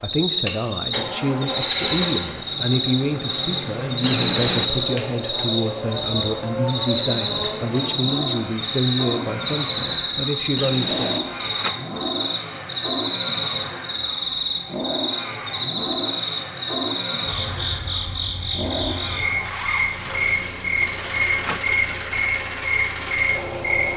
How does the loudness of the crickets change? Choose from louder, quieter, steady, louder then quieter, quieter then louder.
steady.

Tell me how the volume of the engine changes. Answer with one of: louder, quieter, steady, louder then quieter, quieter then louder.
steady.